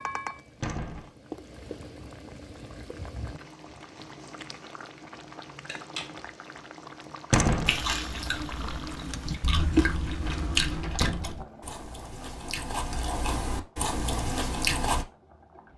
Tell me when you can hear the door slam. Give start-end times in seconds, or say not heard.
0.6-1.1, 7.3-7.8, 10.8-11.3.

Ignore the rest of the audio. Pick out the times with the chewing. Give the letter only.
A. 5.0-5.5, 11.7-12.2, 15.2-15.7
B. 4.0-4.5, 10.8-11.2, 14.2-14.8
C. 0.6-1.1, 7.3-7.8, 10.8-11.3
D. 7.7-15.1
D.